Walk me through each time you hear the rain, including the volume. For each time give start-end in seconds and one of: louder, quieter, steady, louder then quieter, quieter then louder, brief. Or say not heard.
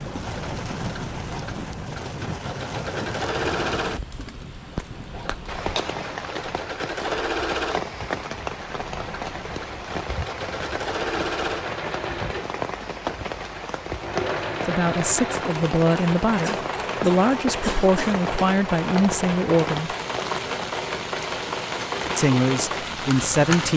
0.0-23.7 steady.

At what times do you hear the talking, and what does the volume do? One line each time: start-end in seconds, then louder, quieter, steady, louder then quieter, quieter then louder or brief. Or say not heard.
14.7-19.9 steady
22.1-23.7 brief.